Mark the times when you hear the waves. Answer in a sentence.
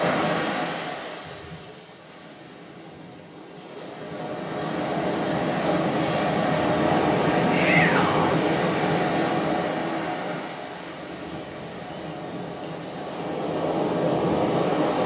The waves can be heard from 0.0 to 15.0 s.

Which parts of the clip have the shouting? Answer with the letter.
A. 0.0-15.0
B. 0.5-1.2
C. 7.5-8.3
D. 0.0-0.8
C.